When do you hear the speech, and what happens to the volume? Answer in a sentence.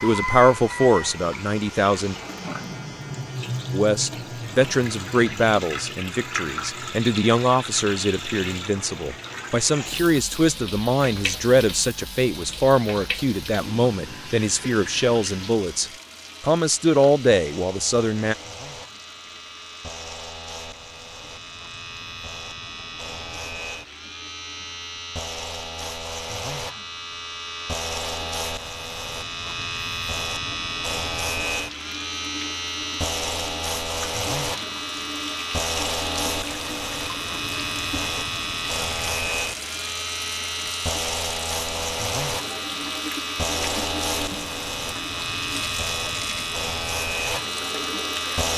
The speech can be heard briefly from 0.0 to 2.1 s; and from 3.7 to 18.4 s, at a steady volume.